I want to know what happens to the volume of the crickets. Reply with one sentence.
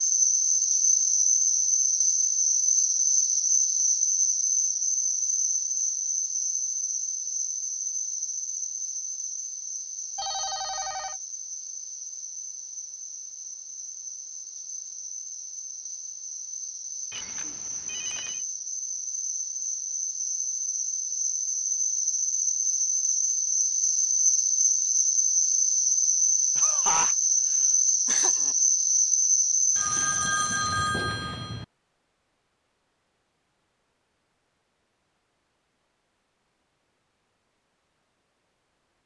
The loudness of the crickets goes down, then up.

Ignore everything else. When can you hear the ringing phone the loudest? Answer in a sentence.
The loudest moment of the ringing phone is at 31 seconds.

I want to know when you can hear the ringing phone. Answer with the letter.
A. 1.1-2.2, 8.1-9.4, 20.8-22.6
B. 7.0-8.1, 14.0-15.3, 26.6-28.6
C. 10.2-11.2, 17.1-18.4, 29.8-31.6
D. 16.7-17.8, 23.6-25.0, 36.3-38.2
C.